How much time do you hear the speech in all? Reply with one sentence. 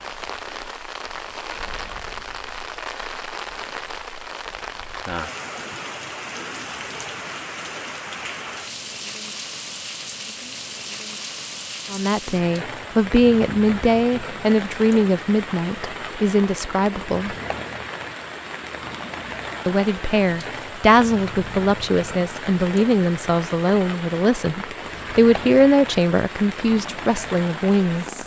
The speech can be heard for 14 seconds in total.